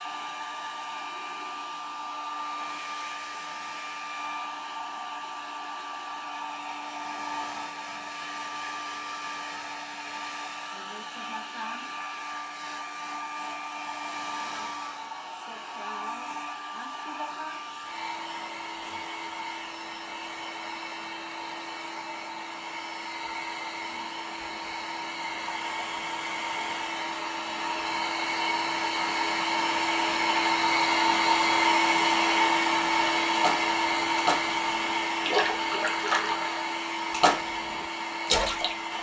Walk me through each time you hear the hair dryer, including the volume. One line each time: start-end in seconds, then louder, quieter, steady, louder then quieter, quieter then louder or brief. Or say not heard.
0.0-38.9 louder.